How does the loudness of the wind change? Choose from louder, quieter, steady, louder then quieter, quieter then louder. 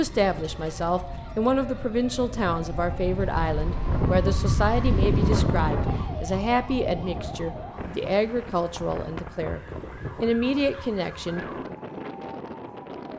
louder then quieter.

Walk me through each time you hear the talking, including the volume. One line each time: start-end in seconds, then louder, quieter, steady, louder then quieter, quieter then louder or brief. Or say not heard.
0.0-11.8 steady.